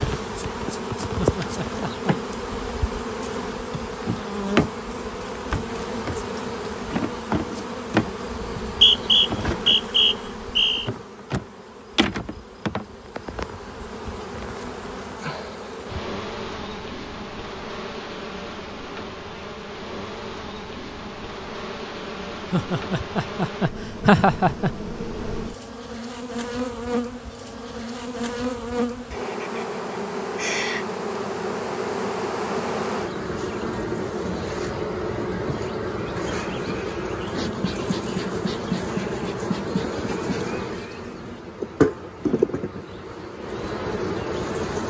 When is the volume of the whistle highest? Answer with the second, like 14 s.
9 s.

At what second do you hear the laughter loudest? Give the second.
24 s.